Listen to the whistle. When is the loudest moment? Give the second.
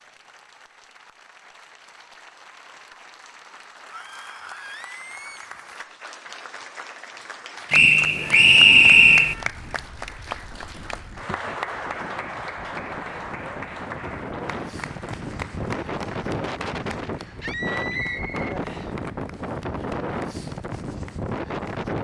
9 s.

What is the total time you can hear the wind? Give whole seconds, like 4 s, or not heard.
14 s.